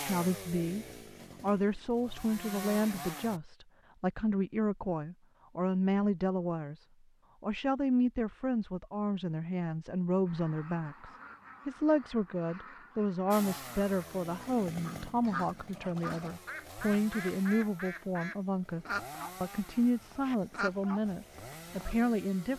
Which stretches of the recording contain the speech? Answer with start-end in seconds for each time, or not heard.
0.0-6.8, 7.4-22.5.